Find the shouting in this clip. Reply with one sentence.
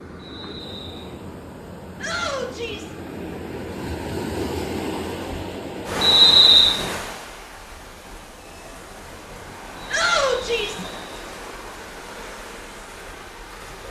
The shouting can be heard from 2.0 to 3.0 s and from 9.9 to 10.8 s.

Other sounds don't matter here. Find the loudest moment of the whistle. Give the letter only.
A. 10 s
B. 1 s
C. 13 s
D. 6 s
D.